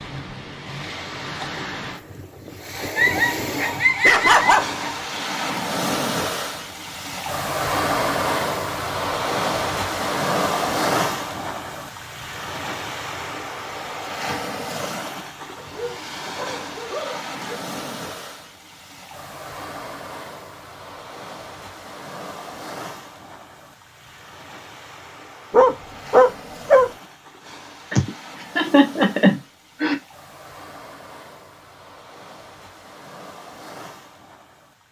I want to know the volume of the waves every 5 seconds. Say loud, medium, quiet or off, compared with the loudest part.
medium, loud, loud, medium, quiet, quiet, quiet.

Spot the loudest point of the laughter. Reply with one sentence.
The volume of the laughter peaks at 29 seconds.